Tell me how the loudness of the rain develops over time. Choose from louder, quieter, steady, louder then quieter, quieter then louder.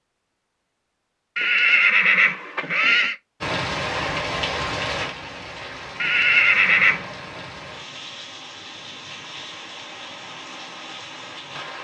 quieter.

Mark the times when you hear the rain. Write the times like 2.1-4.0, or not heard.
3.4-11.7.